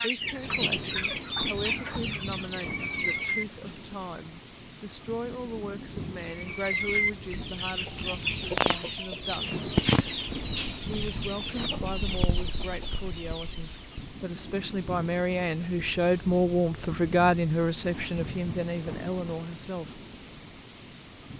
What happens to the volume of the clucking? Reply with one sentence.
The volume of the clucking goes down.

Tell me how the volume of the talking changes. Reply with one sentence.
The volume of the talking goes up.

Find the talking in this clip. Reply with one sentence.
The talking can be heard from 0.0 to 9.6 s and from 10.8 to 20.1 s.